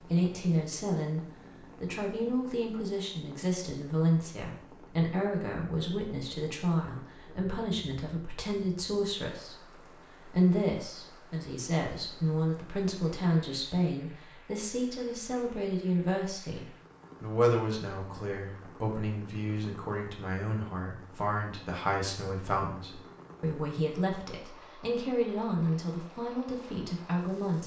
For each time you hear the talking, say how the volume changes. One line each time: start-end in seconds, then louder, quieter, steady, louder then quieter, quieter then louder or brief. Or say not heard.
0.0-1.2 brief
1.8-9.6 steady
10.2-27.6 steady.